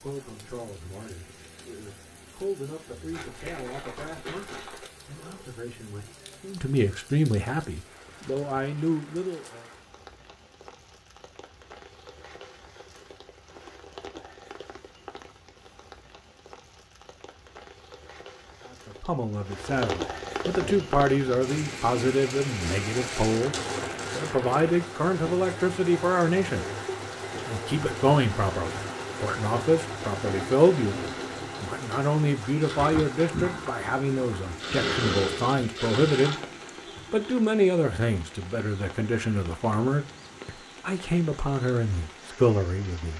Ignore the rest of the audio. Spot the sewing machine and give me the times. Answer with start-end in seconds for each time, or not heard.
20.5-37.4.